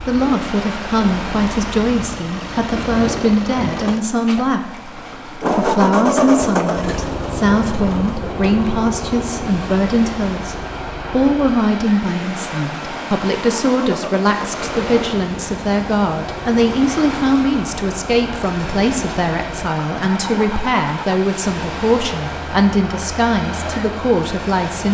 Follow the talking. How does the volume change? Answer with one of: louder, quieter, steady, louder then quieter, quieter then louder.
steady.